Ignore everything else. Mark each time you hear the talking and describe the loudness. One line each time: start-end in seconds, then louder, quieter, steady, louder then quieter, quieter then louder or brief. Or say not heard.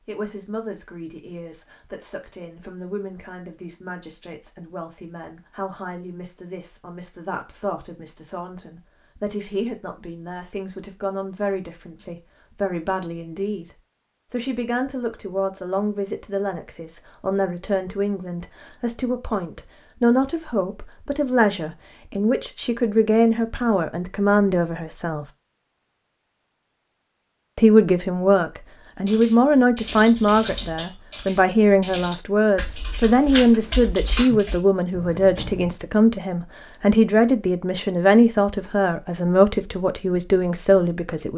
0.1-25.2 louder
27.6-41.3 steady.